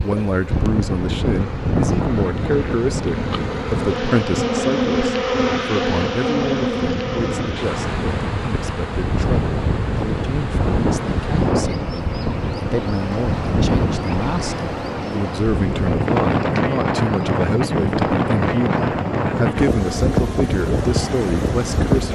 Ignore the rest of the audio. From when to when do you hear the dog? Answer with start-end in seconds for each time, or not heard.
not heard.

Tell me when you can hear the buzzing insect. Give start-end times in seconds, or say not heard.
0.0-22.1.